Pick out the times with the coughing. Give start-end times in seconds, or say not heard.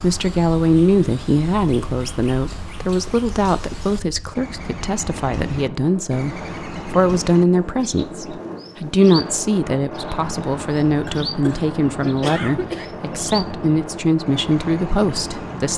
11.1-12.8.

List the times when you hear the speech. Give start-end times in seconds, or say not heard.
0.0-15.7.